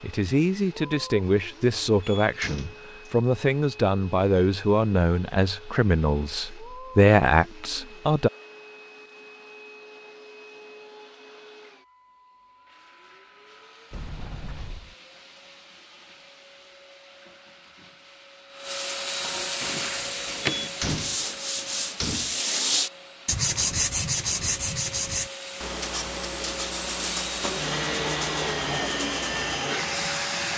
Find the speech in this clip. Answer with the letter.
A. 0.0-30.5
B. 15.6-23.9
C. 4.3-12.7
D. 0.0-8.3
D.